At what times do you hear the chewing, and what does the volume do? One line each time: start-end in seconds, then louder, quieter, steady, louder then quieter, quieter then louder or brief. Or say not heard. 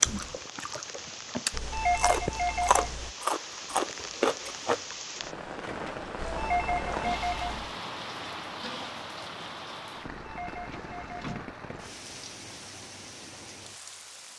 0.0-4.8 louder.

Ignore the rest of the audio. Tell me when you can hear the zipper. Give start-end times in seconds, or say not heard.
not heard.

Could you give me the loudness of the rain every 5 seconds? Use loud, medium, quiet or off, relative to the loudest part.
loud, loud, medium.